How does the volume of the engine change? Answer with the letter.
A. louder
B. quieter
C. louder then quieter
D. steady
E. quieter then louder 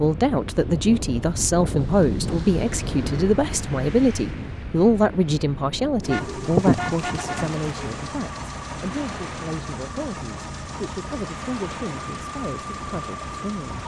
D.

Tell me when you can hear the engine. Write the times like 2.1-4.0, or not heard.
6.0-13.8.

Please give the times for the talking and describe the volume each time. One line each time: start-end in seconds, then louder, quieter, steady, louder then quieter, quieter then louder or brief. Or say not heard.
0.0-13.8 quieter.